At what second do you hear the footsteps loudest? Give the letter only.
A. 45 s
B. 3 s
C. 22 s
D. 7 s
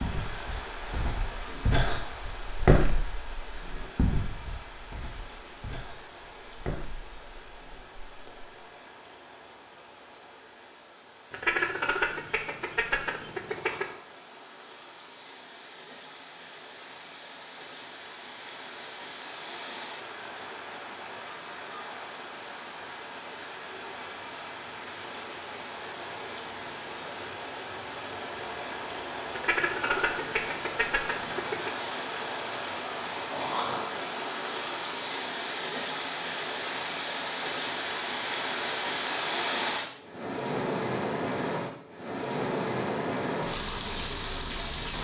B.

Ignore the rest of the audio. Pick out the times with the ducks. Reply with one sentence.
The ducks can be heard from 11.3 to 13.9 s and from 29.3 to 31.7 s.